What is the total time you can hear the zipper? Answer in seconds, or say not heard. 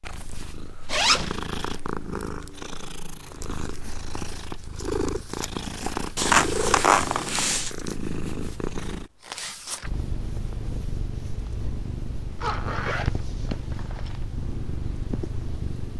4 s.